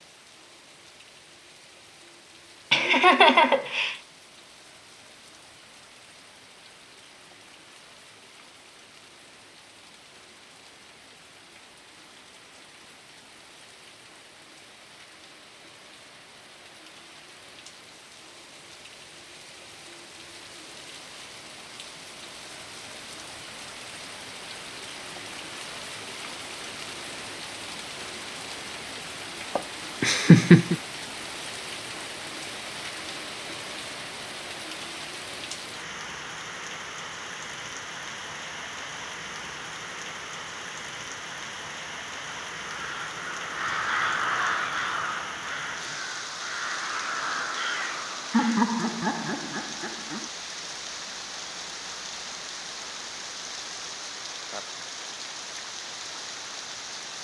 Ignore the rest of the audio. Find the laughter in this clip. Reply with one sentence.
The laughter can be heard from 2.7 to 4.0 s, from 29.6 to 30.8 s and from 48.3 to 50.2 s.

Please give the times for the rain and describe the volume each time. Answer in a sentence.
You can hear the rain from 0.0 to 57.1 s, getting louder.